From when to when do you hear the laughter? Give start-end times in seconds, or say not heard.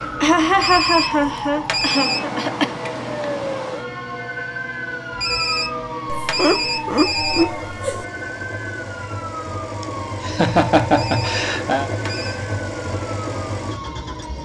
0.2-2.8, 6.0-8.1, 9.8-11.9.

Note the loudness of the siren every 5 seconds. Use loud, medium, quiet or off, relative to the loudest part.
loud, loud, medium.